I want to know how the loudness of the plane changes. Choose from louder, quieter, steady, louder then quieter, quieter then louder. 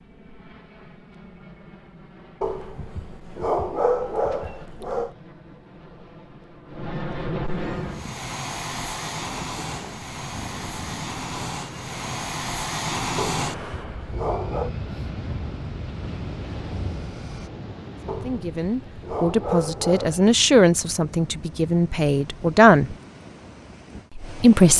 louder then quieter.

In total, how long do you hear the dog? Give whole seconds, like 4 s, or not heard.
7 s.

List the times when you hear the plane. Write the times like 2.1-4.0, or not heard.
0.0-17.5.